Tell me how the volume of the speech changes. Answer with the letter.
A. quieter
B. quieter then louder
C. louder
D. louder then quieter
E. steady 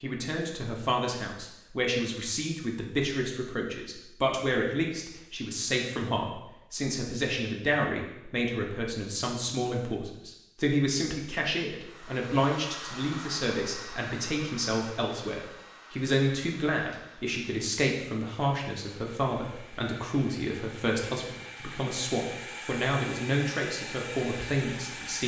E.